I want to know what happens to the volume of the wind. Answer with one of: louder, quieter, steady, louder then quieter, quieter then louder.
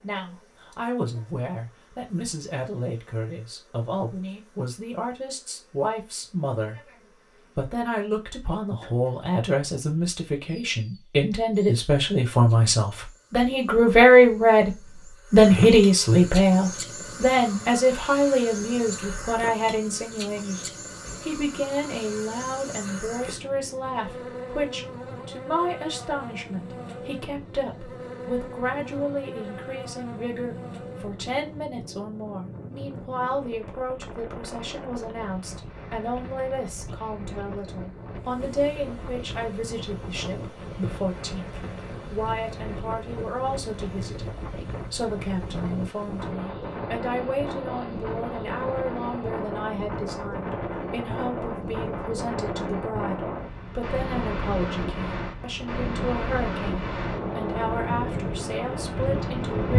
louder.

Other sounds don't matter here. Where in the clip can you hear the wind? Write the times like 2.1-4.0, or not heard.
16.6-59.7.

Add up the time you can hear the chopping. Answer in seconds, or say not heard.
not heard.